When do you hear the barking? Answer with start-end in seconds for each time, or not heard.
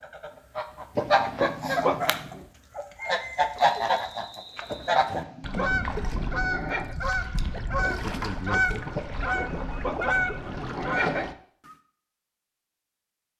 0.9-2.5, 4.7-7.0, 8.9-11.3.